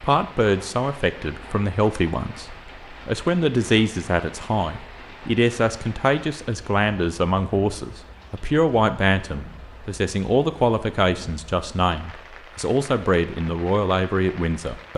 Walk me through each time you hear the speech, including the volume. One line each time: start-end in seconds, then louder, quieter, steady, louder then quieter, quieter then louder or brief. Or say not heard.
0.0-14.9 steady.